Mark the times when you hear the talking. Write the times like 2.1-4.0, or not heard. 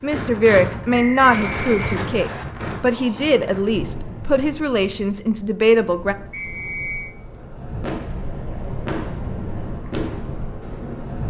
0.0-6.2.